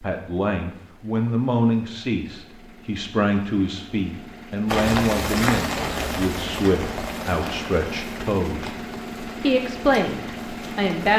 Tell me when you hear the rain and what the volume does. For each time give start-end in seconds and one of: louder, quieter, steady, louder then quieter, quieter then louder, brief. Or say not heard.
4.7-11.1 quieter.